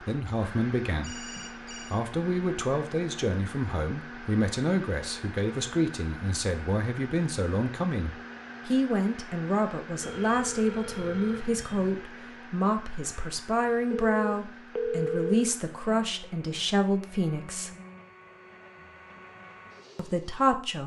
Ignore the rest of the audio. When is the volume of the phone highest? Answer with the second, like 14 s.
15 s.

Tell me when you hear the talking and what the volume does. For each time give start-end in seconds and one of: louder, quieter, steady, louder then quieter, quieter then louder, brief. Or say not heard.
0.0-17.7 steady
19.9-20.8 brief.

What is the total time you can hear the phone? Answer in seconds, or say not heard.
5 s.